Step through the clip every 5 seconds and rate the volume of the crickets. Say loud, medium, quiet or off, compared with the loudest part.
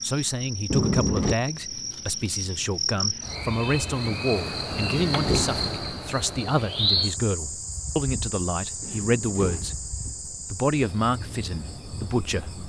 loud, loud, medium.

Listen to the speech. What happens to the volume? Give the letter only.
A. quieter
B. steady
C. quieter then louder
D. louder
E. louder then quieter
B.